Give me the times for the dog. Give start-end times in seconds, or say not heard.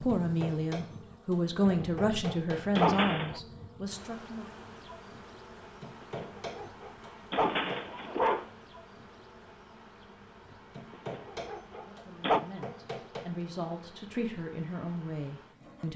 1.6-3.4, 6.0-8.4, 11.1-12.4.